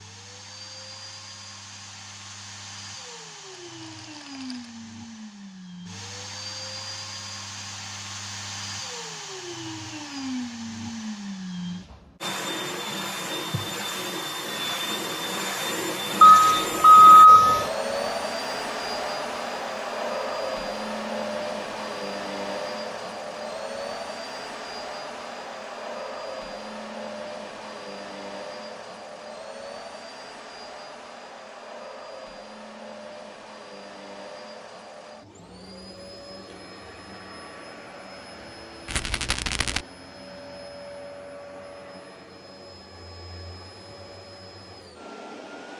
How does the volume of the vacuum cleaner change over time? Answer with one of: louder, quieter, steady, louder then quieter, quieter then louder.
louder then quieter.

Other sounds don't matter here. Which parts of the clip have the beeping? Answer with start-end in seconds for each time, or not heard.
16.2-17.6.